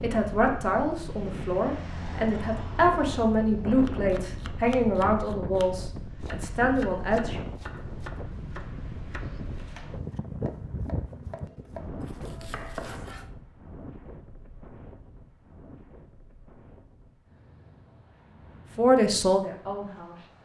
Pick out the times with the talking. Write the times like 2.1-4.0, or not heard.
0.0-7.4, 18.8-20.2.